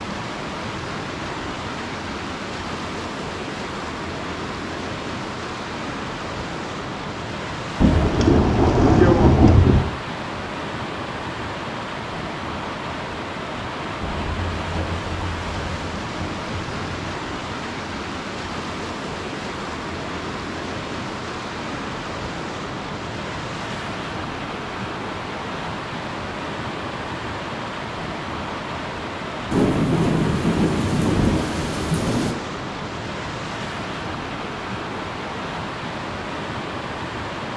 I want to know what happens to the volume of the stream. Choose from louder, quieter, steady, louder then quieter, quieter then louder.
steady.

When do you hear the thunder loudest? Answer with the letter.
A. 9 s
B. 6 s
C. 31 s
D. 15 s
A.